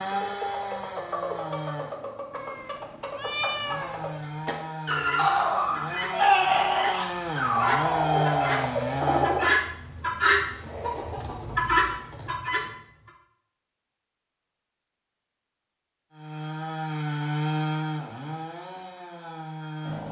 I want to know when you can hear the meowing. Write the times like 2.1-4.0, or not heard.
2.3-4.0.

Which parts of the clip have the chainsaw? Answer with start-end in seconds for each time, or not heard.
0.0-9.4, 16.1-20.0.